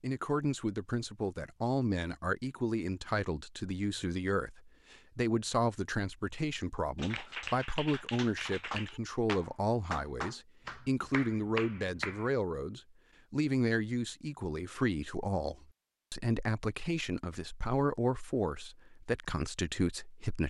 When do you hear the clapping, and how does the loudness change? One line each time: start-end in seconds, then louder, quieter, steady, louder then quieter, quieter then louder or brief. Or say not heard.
7.0-12.3 steady.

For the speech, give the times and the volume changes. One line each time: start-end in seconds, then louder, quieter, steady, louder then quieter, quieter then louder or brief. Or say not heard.
0.0-20.4 steady.